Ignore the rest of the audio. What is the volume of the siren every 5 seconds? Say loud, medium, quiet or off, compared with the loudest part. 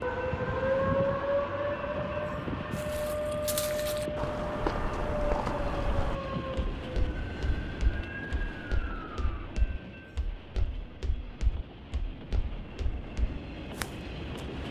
loud, medium, off.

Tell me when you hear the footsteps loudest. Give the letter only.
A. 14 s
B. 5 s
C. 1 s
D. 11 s
B.